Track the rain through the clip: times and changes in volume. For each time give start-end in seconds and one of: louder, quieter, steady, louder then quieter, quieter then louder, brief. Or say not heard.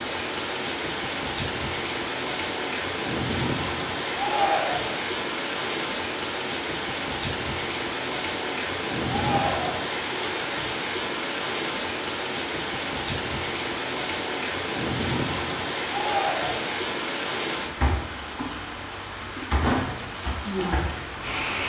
0.0-21.6 steady.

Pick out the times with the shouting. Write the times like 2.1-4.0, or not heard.
4.1-5.0, 9.1-9.9, 15.8-16.8.